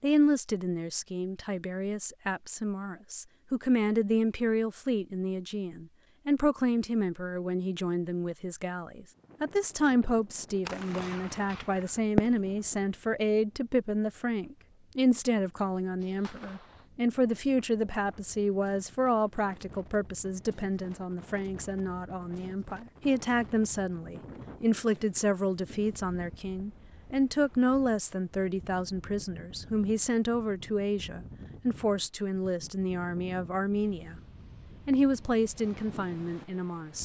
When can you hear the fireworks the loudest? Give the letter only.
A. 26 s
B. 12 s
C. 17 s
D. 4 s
B.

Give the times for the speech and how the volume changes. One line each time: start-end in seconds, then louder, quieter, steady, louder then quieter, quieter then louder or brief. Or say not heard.
0.0-34.2 steady
34.9-37.0 brief.